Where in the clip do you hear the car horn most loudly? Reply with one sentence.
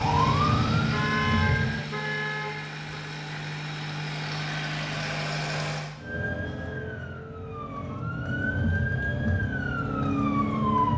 The volume of the car horn peaks at 1 second.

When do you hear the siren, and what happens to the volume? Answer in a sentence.
You can hear the siren briefly from 0.0 to 1.8 s; and from 6.0 to 10.9 s, getting louder.